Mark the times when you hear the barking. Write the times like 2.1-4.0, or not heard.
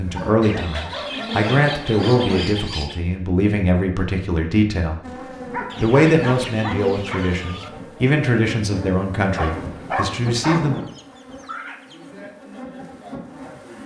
0.1-2.5, 5.5-7.2, 9.3-10.7.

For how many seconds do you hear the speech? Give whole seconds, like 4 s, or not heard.
10 s.